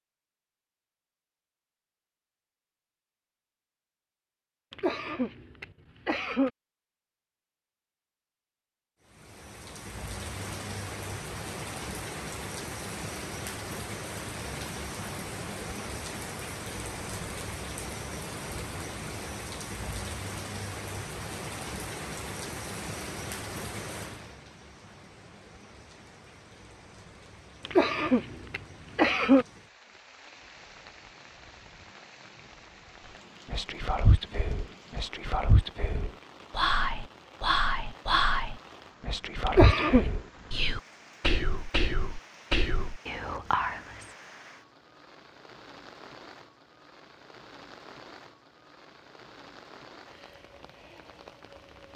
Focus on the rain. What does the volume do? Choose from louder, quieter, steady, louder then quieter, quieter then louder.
quieter.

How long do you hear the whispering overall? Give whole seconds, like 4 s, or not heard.
11 s.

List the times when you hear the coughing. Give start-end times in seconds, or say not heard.
4.7-6.5, 27.6-29.4, 39.5-40.0.